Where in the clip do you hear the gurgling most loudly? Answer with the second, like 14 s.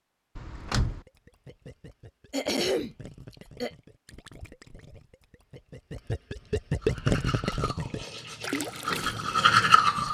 7 s.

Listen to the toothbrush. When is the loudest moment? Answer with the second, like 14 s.
10 s.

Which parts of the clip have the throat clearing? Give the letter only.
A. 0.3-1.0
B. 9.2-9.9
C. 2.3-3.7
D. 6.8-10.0
C.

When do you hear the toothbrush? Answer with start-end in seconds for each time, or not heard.
6.8-10.0.